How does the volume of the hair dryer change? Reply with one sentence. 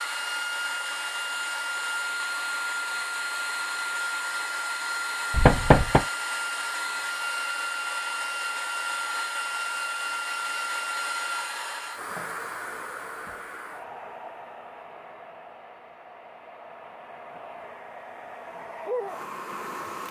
The loudness of the hair dryer goes down.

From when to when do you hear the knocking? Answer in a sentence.
You can hear the knocking from 5.3 to 6.0 s.